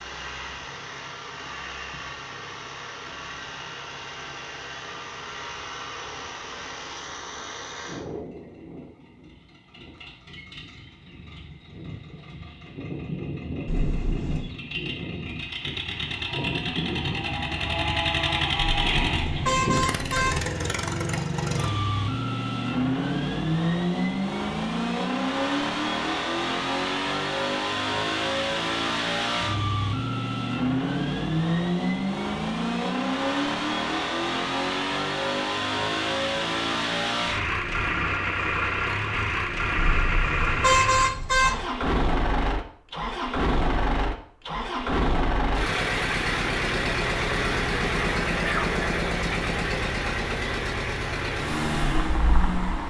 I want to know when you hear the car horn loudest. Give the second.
41 s.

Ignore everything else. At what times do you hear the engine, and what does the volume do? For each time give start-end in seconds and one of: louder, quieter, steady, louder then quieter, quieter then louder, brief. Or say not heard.
0.0-52.8 louder.